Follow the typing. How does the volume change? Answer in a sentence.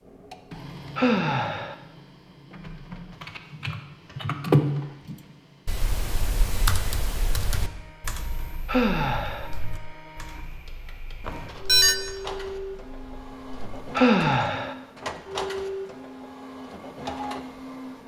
The loudness of the typing goes down.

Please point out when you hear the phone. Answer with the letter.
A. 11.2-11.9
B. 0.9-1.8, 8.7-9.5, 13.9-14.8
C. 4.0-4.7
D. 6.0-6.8
A.